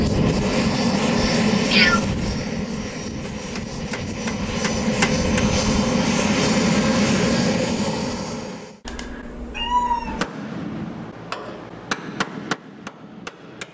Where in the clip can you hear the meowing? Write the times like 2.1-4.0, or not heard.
1.7-2.1, 8.8-10.3.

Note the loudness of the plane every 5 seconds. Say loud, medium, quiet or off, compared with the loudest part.
loud, loud, off.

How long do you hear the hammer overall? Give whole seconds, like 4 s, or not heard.
6 s.